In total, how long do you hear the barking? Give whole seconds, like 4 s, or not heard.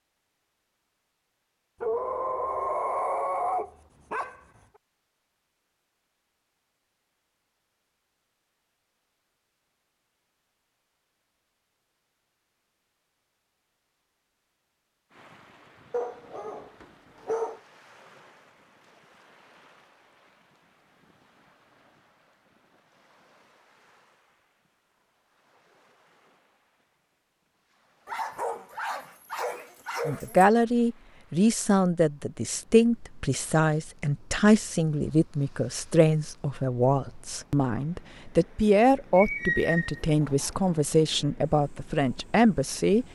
8 s.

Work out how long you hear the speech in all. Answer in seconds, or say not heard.
13 s.